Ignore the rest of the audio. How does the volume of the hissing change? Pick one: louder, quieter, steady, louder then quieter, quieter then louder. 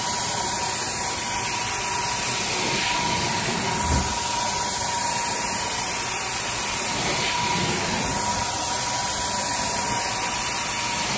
steady.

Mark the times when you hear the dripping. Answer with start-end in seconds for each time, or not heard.
not heard.